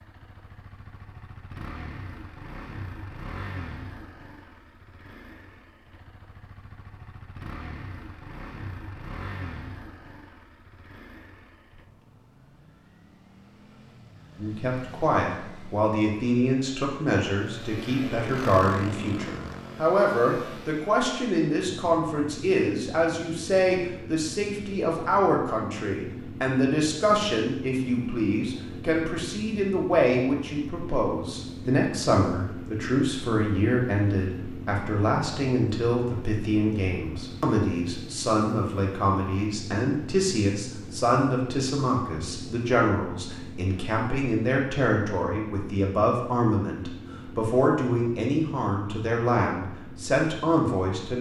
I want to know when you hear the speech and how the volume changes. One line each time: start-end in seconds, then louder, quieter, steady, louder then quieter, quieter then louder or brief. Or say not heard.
14.3-51.1 steady.